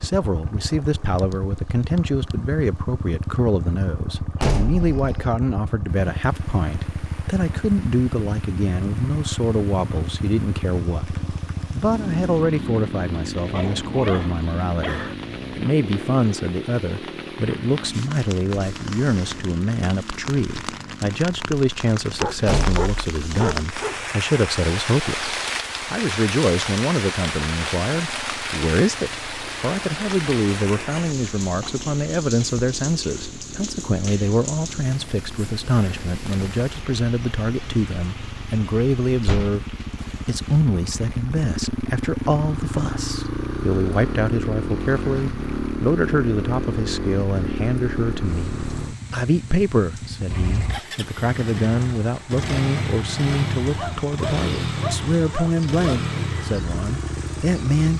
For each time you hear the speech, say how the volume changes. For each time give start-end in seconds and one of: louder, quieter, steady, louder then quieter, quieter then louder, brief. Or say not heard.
0.0-57.9 steady.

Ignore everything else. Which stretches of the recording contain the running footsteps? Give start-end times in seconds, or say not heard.
not heard.